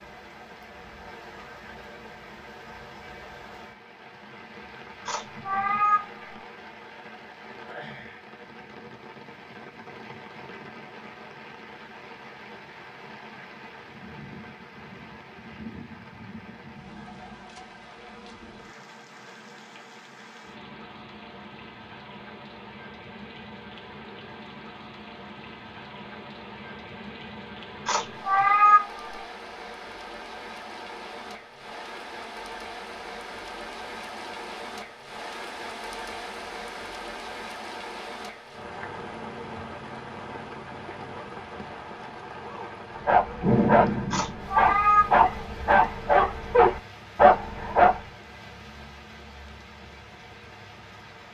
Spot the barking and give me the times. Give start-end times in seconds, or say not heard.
43.0-48.0.